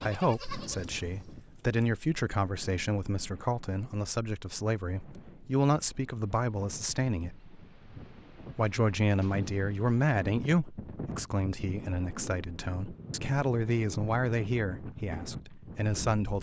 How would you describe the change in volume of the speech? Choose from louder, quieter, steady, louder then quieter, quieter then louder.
steady.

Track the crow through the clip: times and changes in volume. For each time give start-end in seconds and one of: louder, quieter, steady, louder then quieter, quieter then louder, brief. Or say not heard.
not heard.